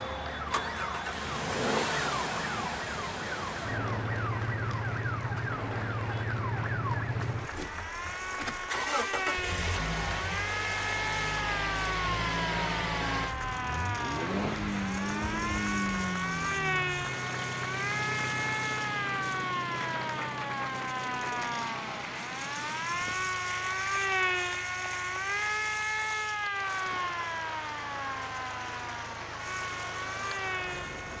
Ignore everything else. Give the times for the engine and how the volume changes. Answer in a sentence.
The engine can be heard from 0.0 to 31.1 s, getting quieter.